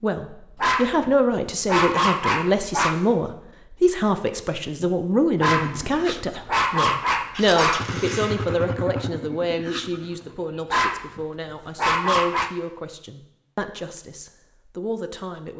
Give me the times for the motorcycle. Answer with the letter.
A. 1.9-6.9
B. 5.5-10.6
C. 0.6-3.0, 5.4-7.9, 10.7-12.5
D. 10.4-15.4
B.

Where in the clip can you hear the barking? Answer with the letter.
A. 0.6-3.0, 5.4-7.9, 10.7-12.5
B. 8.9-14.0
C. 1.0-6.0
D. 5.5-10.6
A.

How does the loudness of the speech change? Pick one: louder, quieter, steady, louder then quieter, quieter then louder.
quieter.